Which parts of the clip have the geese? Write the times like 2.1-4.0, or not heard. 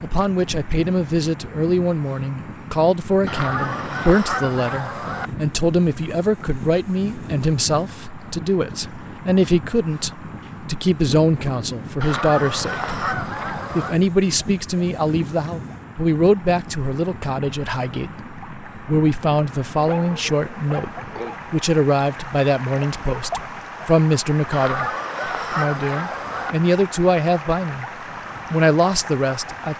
3.2-5.3, 12.0-14.0, 24.5-26.6.